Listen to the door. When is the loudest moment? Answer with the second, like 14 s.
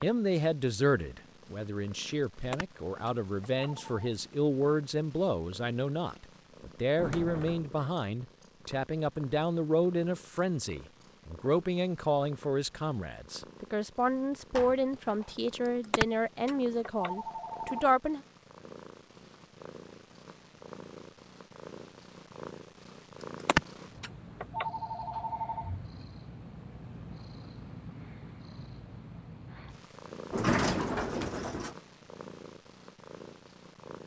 31 s.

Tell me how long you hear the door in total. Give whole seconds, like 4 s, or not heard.
3 s.